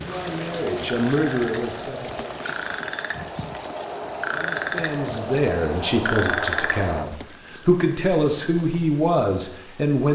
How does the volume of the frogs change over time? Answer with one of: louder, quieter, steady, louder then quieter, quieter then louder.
louder.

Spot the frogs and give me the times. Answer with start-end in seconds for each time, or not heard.
0.1-7.0.